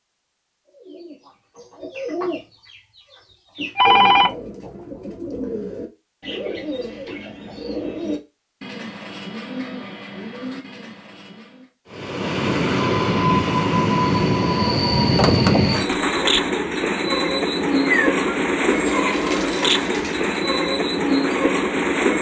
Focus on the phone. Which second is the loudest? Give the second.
4 s.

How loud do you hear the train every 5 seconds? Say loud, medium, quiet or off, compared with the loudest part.
off, off, loud, loud, loud.